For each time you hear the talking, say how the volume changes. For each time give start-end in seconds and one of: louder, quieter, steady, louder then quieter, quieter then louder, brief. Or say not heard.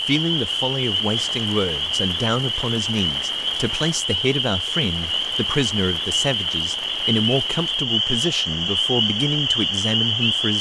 0.0-10.5 steady.